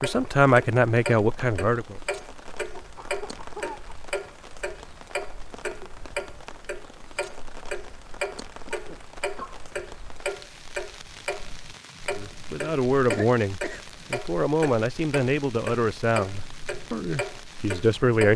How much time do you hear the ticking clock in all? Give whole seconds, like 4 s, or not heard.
18 s.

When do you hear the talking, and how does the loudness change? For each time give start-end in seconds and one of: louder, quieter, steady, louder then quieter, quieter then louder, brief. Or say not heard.
0.0-1.9 brief
12.2-18.3 steady.